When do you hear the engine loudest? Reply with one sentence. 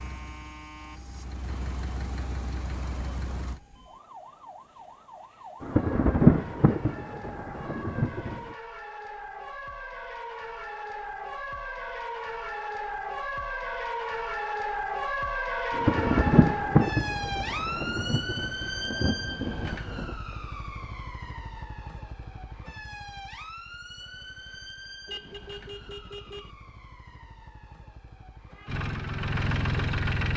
The volume of the engine peaks at 30 seconds.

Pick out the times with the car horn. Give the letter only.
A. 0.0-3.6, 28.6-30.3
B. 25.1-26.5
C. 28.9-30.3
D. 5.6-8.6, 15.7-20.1
B.